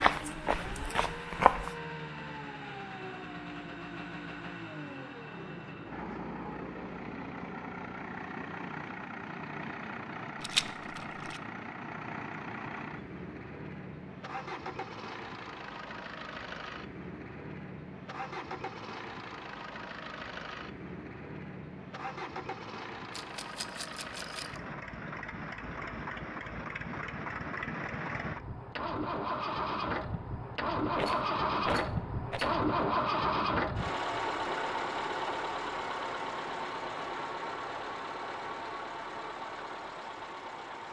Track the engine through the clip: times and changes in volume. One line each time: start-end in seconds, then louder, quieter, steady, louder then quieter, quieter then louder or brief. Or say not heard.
0.0-40.8 louder.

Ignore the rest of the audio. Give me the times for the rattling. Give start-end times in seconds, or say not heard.
10.4-11.4, 23.1-24.6, 30.9-32.5.